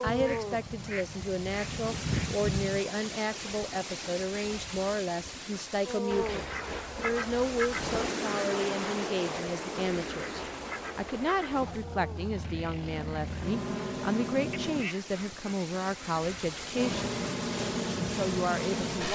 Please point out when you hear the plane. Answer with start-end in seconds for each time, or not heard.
7.7-14.9, 16.7-19.1.